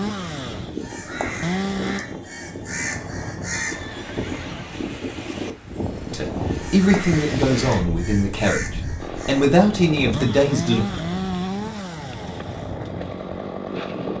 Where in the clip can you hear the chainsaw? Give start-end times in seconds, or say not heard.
0.0-2.0, 9.0-14.1.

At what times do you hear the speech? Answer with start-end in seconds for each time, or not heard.
6.1-10.8.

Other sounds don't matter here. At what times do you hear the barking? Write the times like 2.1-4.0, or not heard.
not heard.